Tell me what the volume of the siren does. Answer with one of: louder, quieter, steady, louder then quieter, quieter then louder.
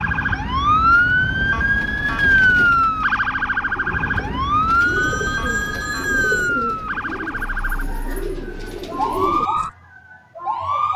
quieter.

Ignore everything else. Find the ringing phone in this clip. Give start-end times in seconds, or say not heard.
4.8-6.5.